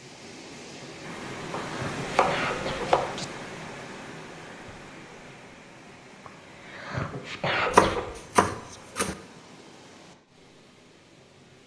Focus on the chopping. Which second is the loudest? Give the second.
8 s.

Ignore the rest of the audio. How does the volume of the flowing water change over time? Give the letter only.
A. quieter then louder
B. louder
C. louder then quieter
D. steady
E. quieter
E.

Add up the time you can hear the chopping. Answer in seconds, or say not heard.
3 s.